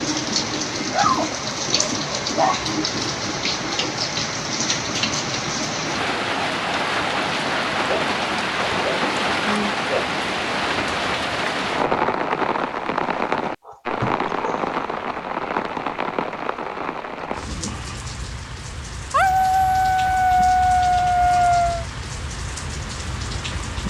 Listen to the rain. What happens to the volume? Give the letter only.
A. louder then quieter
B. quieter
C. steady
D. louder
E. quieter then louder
B.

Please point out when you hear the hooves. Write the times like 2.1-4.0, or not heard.
not heard.